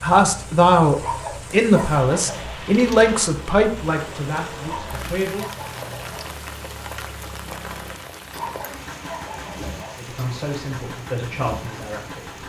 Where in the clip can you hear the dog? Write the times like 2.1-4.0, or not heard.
0.9-2.5, 4.6-6.3, 8.3-10.0.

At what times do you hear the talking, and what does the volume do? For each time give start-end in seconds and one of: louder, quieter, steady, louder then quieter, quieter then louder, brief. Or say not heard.
0.0-5.5 quieter
9.9-12.3 brief.